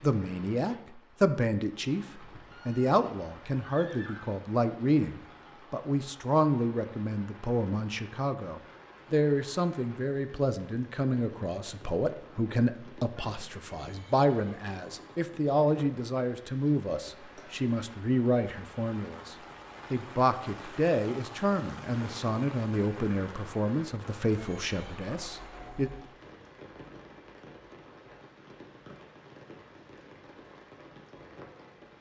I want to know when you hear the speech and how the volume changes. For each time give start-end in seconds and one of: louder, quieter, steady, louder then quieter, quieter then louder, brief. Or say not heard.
0.0-25.9 steady.